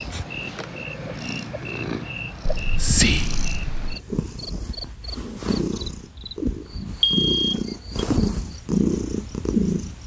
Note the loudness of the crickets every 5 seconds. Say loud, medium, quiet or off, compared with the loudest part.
loud, medium.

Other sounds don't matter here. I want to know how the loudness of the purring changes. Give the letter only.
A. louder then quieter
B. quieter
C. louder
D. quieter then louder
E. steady
C.